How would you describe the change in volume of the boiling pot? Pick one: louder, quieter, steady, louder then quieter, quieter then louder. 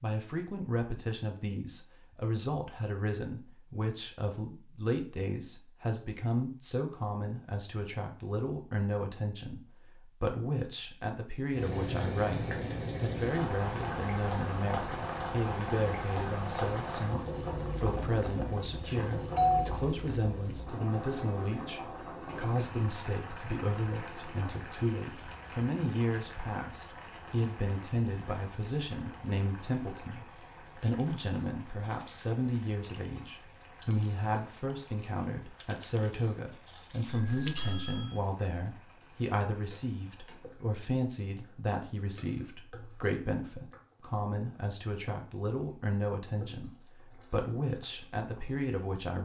quieter.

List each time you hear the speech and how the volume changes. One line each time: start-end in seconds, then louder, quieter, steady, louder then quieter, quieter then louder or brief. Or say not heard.
0.0-49.1 steady.